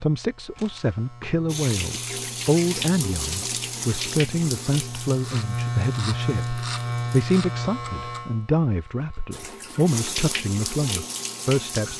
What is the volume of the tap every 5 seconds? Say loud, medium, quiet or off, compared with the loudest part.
loud, medium, loud.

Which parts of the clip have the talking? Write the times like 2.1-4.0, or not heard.
0.0-11.9.